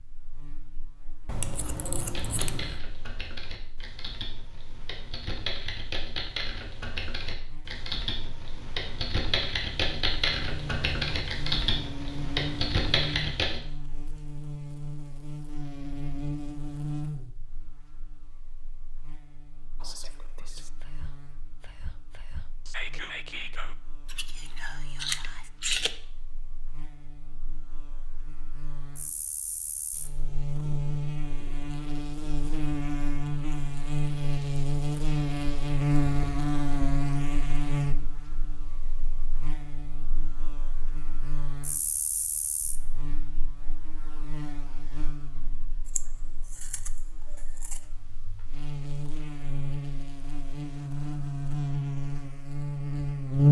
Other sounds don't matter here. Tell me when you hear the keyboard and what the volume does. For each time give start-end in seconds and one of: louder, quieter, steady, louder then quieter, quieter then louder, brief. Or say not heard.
2.0-13.6 louder.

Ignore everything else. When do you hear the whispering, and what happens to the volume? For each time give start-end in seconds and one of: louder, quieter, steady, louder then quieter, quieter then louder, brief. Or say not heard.
19.8-25.5 louder then quieter.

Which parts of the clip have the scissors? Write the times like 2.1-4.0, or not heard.
1.2-2.8, 24.1-25.9, 45.9-47.8.